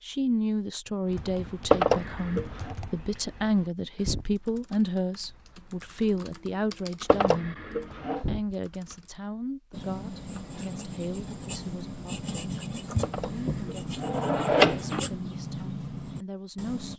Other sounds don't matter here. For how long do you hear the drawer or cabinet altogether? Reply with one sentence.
The drawer or cabinet can be heard for 4 seconds in total.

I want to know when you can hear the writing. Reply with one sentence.
You can hear the writing from 9.7 to 16.9 s.